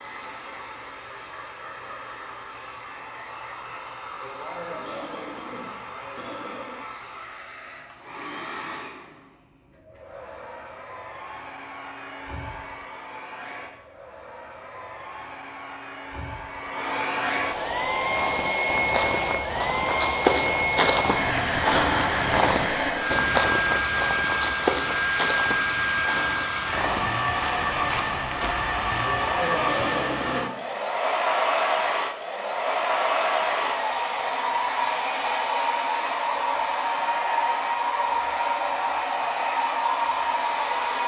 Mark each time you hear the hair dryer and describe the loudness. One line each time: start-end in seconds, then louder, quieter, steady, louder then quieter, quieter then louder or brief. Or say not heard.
0.0-41.0 louder.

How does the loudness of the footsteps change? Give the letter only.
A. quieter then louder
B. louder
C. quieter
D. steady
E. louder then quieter
E.